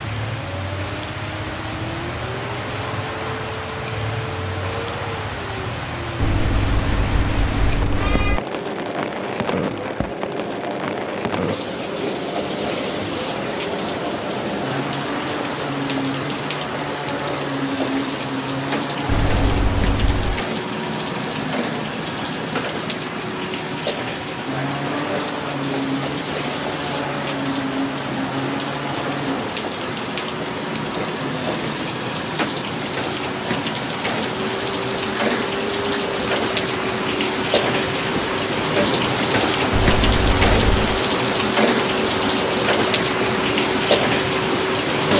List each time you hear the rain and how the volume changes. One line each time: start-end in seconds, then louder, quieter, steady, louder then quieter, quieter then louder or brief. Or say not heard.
0.0-45.1 louder.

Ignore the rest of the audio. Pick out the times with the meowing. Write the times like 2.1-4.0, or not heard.
6.2-8.4, 19.1-20.4, 39.7-41.0.